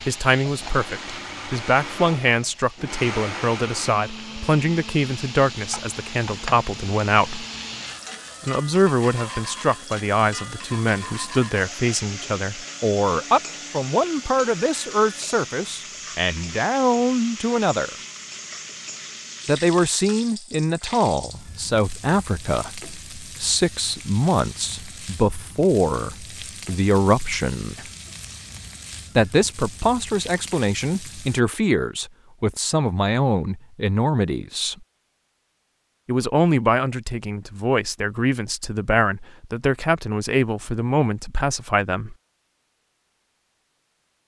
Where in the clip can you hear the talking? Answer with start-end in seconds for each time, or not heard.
0.1-7.5, 8.4-17.9, 19.4-27.9, 29.1-34.8, 36.0-42.1.